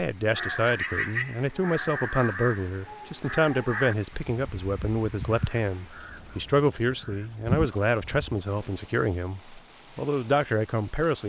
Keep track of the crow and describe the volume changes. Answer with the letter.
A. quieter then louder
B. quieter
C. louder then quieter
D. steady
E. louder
A.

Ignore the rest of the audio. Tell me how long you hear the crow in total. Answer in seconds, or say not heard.
8 s.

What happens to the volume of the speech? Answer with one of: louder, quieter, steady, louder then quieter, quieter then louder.
steady.